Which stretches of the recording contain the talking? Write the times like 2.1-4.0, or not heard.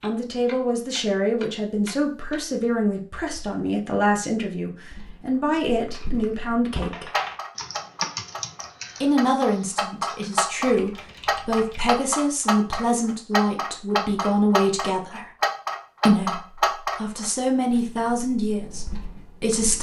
0.0-7.1, 9.0-15.3, 16.1-19.7.